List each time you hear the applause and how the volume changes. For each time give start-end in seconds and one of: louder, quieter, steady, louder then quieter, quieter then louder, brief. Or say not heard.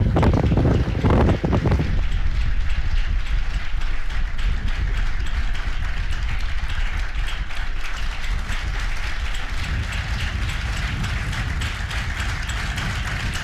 0.0-13.3 louder.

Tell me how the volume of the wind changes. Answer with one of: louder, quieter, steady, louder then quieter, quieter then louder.
quieter then louder.